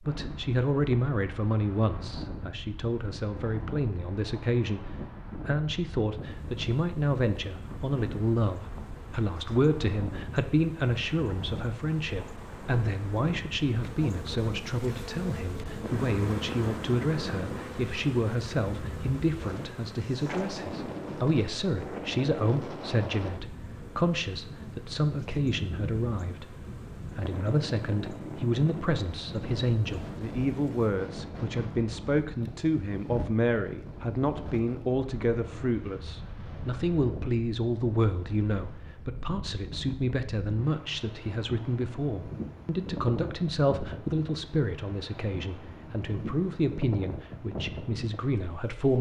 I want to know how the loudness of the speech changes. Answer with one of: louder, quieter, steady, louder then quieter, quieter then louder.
steady.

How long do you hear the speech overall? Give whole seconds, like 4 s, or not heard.
49 s.